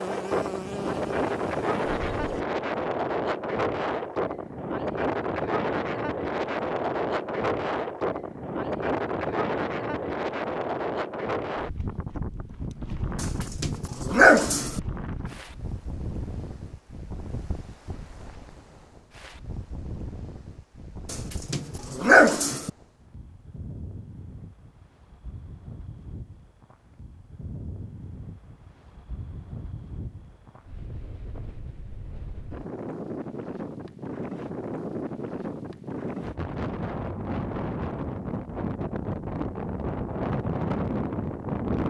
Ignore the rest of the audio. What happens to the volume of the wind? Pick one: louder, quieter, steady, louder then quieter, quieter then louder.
quieter then louder.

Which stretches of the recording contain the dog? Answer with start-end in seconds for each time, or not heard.
13.2-14.8, 21.1-22.7.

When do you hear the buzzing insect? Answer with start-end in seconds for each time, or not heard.
0.0-2.5.